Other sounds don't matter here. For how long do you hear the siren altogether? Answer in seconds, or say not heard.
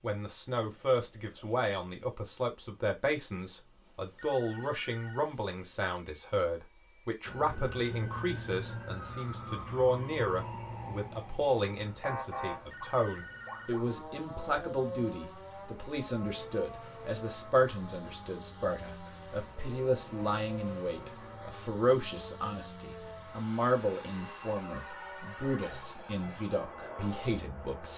21 s.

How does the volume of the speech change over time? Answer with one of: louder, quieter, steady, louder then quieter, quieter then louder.
steady.